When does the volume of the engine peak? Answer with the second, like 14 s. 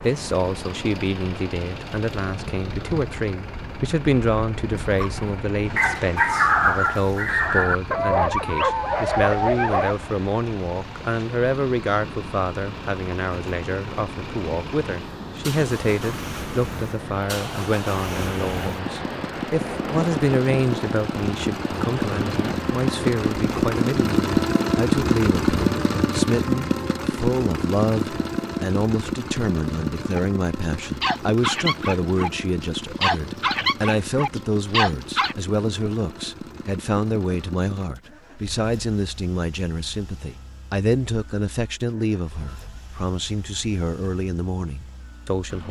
25 s.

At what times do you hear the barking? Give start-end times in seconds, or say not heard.
4.9-9.9, 30.1-35.4.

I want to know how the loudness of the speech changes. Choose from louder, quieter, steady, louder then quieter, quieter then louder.
steady.